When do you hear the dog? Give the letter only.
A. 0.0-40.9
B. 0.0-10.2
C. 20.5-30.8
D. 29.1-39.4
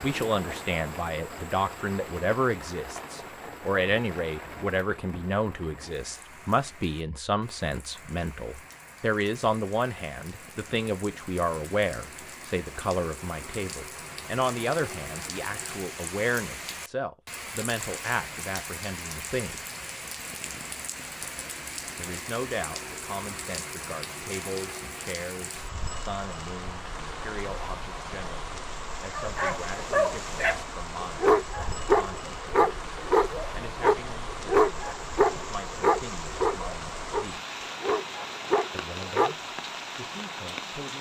D.